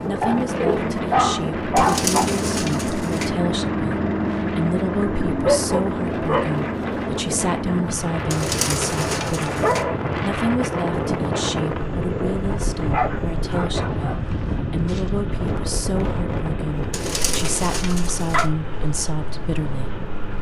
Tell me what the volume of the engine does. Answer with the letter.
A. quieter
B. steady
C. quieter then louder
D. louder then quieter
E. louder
A.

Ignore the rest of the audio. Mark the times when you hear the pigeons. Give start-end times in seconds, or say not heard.
1.8-3.3, 8.3-9.8, 16.9-18.5.